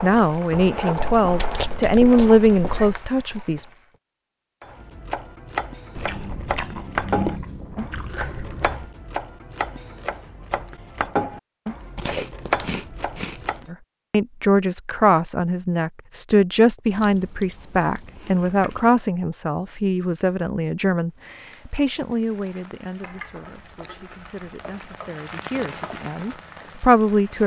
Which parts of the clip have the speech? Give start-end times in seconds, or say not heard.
0.0-3.6, 13.7-27.4.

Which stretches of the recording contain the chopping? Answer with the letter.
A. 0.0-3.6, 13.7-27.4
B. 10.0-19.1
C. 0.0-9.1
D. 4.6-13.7
D.